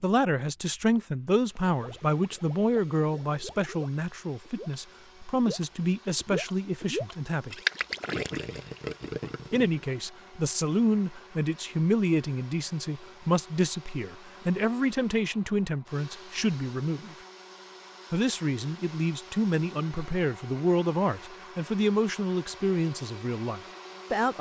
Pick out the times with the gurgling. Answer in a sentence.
You can hear the gurgling from 1.8 to 9.8 s.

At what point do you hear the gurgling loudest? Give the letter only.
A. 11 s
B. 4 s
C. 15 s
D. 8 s
D.